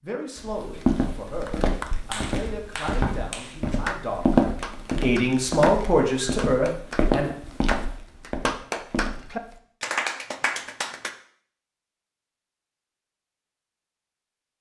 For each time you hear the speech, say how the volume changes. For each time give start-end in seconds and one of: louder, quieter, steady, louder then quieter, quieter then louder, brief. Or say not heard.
0.0-7.3 louder.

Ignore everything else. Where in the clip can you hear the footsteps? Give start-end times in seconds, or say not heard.
0.3-9.6.